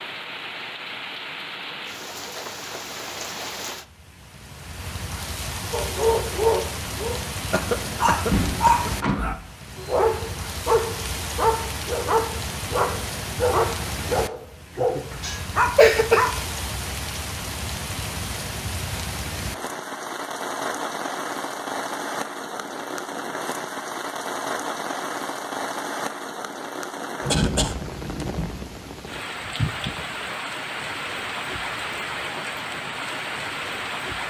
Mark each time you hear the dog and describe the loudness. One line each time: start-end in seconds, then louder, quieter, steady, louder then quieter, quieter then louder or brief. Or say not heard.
5.7-16.3 steady.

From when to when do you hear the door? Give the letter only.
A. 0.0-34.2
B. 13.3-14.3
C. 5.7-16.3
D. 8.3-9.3
D.